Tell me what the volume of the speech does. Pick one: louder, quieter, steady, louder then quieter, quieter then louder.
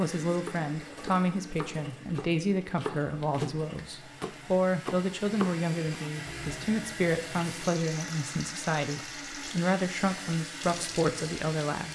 steady.